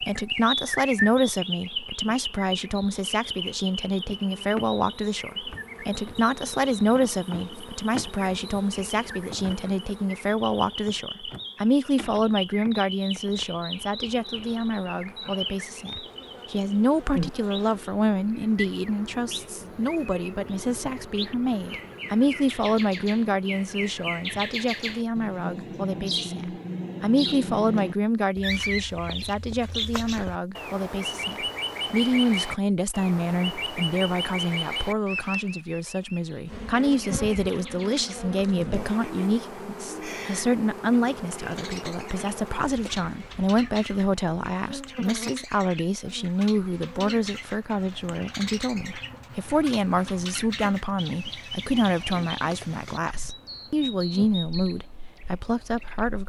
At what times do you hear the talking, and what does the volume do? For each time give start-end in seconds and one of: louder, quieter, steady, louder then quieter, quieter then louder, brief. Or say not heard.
0.0-56.2 steady.